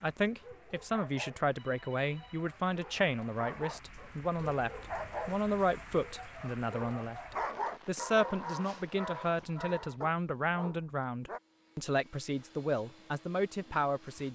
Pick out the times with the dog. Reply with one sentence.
You can hear the dog from 0.1 to 11.4 s.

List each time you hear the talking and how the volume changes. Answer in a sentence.
The talking can be heard from 0.0 to 14.2 s, at a steady volume.